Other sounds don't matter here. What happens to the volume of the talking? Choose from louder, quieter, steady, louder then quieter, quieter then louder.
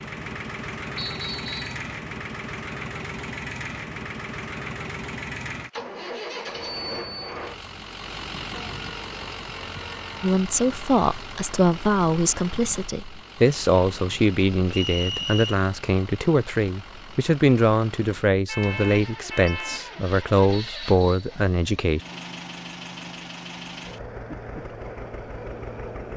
steady.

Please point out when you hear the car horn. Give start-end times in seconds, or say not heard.
8.5-10.3, 18.4-19.9.